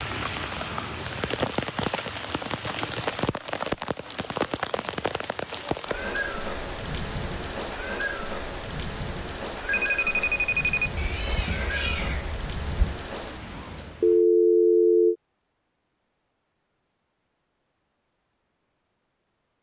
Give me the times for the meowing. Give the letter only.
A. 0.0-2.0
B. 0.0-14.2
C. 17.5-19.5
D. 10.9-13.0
D.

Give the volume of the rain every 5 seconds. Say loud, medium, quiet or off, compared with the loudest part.
loud, loud, medium, off.